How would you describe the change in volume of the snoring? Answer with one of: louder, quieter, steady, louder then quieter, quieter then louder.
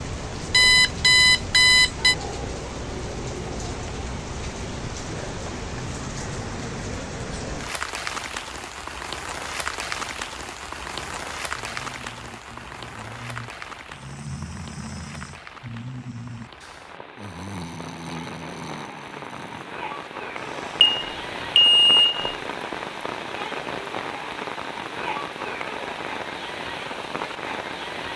louder then quieter.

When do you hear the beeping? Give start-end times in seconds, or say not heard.
0.5-2.1, 20.8-22.1.